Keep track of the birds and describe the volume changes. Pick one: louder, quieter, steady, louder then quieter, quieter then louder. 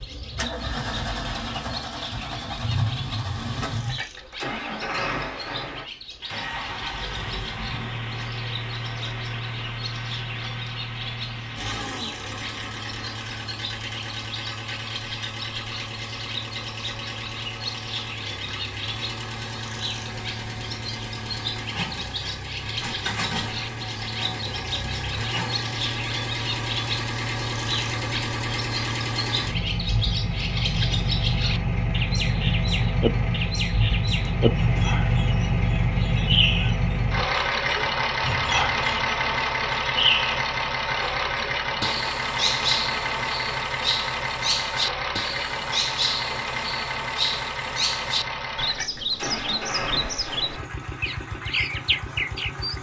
louder.